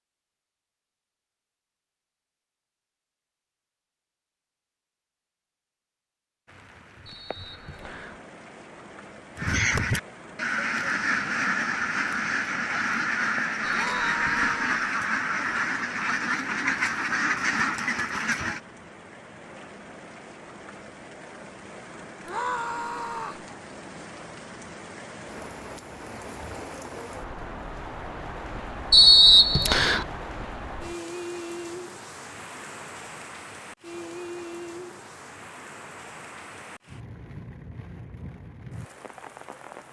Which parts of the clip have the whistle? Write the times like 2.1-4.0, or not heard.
7.0-8.2, 13.6-14.5, 28.9-30.1.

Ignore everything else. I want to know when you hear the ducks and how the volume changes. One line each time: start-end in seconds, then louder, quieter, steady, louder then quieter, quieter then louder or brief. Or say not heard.
9.3-18.6 steady.